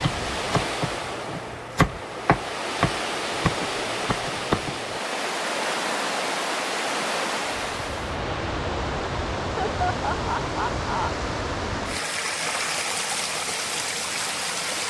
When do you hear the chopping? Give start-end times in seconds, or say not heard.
0.0-5.0.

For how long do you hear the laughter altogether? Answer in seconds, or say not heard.
2 s.